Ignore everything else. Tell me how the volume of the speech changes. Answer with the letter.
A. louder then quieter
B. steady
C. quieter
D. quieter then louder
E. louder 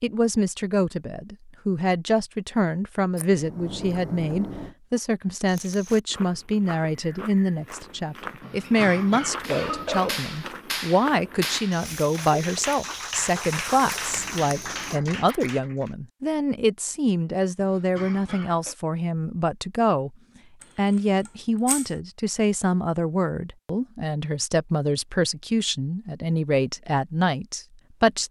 B.